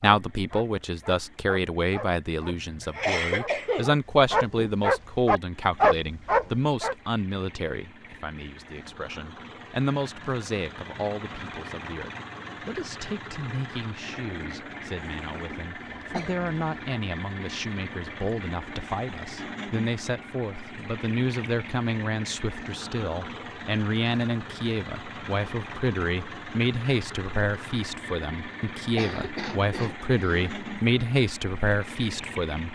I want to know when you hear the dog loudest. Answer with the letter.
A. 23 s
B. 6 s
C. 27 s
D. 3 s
B.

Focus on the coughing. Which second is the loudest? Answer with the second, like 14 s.
3 s.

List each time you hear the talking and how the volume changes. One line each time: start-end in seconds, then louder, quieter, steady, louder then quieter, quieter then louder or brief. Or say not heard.
0.0-32.6 quieter then louder.